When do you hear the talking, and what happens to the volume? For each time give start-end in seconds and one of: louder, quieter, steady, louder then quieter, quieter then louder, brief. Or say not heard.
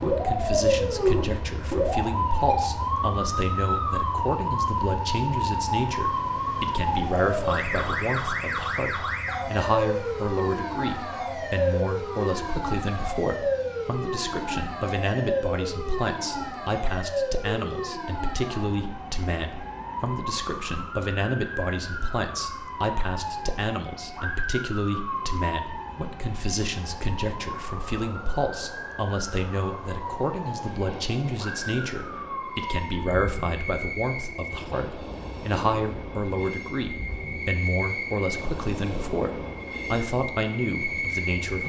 0.0-41.6 steady.